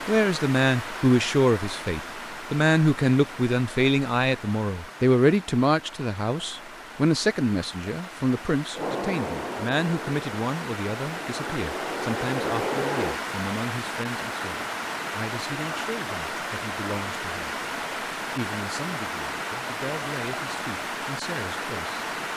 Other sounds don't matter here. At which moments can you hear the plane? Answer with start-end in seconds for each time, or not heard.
8.8-13.2.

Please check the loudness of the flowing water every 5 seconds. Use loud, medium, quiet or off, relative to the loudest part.
medium, medium, loud, loud, loud.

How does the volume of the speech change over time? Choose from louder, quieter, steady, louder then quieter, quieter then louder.
quieter.